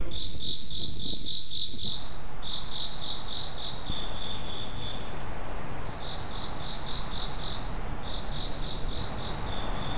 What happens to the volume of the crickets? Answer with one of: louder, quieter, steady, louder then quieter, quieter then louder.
quieter.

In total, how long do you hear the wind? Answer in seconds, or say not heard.
10 s.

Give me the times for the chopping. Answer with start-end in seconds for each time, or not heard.
not heard.